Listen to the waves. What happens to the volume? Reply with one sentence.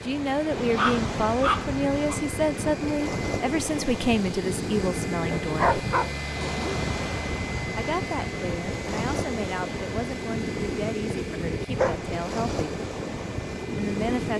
The volume of the waves stays about the same.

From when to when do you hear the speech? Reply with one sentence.
You can hear the speech from 0.0 to 5.8 s, from 7.8 to 12.8 s and from 13.8 to 14.3 s.